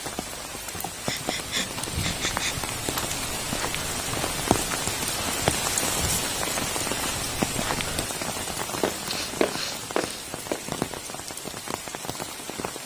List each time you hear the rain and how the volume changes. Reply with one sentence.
The rain can be heard from 0.0 to 12.8 s, getting louder then quieter.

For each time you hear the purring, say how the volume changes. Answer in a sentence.
The purring can't be heard in this clip.